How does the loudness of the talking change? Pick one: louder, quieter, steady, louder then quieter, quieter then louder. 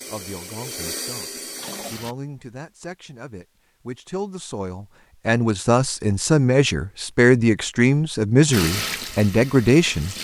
louder.